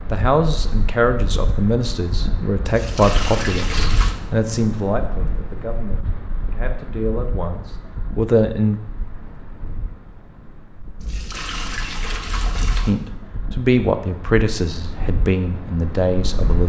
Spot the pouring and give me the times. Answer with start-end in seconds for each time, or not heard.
2.6-4.2, 11.0-12.9.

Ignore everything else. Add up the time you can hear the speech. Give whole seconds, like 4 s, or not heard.
13 s.